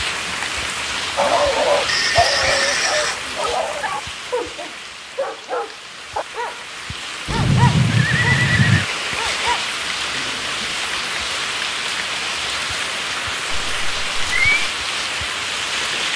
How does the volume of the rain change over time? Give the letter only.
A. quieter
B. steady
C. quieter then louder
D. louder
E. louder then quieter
C.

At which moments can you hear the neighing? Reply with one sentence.
You can hear the neighing from 1.9 to 3.2 s, from 7.2 to 8.8 s and from 13.5 to 14.7 s.